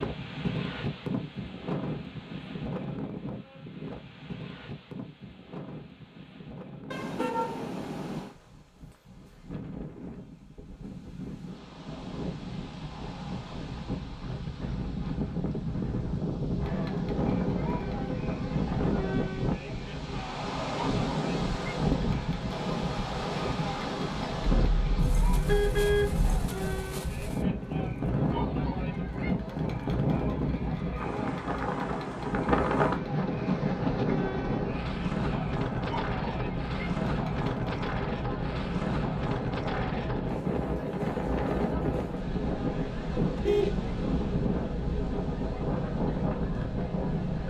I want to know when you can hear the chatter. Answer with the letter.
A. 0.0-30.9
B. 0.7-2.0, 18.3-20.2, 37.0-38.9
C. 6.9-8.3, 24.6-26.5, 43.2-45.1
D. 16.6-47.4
D.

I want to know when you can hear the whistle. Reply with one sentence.
You can't hear the whistle here.